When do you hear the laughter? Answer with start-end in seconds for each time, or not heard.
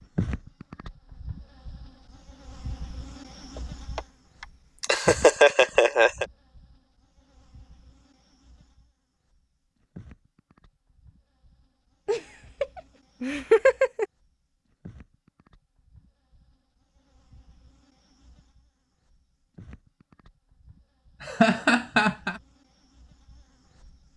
4.8-6.2, 12.1-14.1, 21.2-22.4.